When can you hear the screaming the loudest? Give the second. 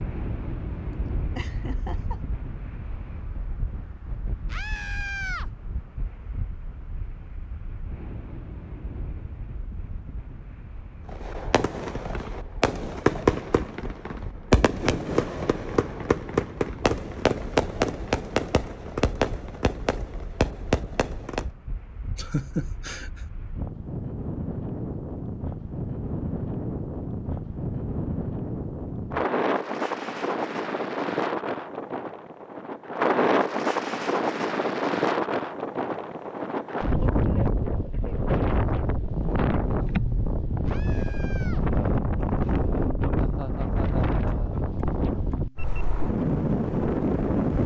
5 s.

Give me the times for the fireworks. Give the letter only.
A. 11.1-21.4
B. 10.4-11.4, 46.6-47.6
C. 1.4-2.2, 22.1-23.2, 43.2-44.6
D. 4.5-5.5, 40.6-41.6
A.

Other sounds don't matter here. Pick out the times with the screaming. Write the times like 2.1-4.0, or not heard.
4.5-5.5, 40.6-41.6.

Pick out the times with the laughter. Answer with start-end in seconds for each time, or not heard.
1.4-2.2, 22.1-23.2, 43.2-44.6.